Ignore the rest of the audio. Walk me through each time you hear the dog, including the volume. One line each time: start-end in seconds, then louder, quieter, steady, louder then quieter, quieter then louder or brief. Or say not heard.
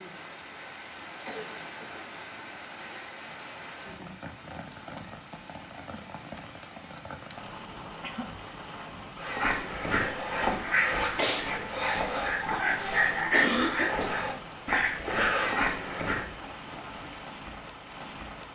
9.2-16.2 steady.